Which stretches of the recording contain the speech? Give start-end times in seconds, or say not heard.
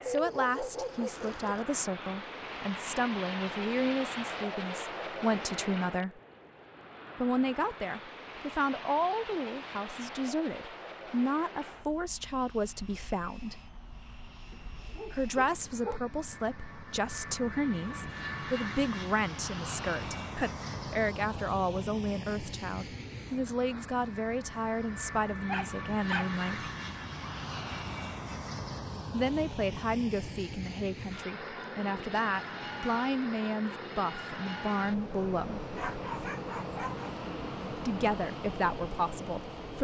0.0-6.2, 7.2-13.6, 15.1-26.6, 29.1-35.8, 37.8-39.8.